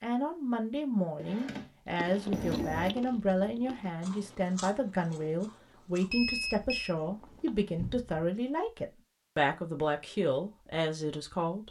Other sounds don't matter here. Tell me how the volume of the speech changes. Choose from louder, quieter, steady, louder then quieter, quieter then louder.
steady.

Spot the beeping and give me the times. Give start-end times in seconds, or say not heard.
2.3-3.0, 6.1-7.0.